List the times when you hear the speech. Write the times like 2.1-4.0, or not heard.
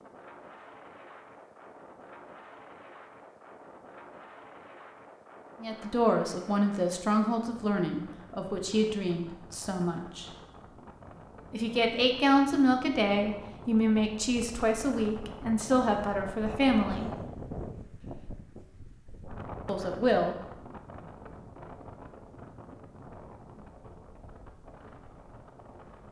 5.6-10.2, 11.5-17.1, 19.6-20.4.